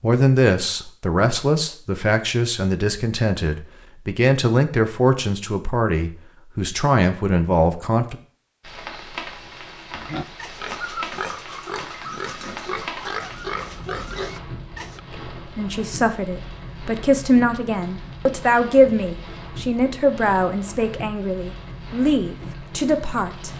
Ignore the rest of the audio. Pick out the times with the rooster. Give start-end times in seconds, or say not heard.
not heard.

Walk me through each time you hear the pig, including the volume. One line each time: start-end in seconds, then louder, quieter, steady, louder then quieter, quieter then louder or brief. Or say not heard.
9.9-15.0 steady.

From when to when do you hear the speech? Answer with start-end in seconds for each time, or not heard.
0.0-8.2, 15.1-23.5.